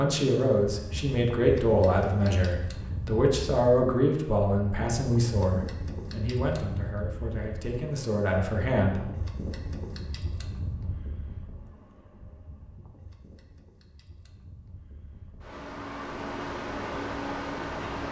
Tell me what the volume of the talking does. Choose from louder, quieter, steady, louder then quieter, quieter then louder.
quieter.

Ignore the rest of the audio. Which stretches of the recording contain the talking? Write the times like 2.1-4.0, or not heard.
0.0-9.0.